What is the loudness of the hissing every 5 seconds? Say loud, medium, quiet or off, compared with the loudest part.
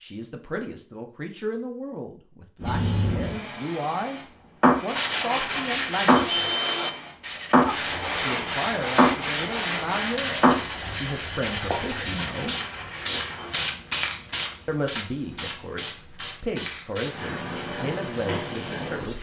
loud, loud, loud, medium.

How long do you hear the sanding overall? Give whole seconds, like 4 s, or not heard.
9 s.